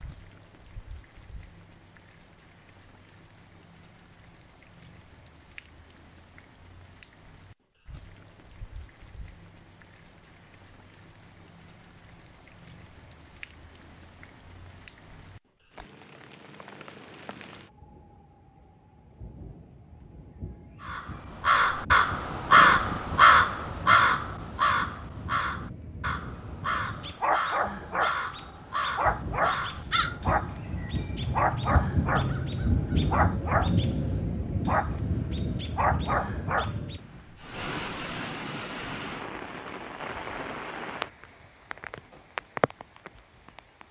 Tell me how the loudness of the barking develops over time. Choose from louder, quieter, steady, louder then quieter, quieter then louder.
steady.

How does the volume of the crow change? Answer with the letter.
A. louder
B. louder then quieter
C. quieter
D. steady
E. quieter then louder
C.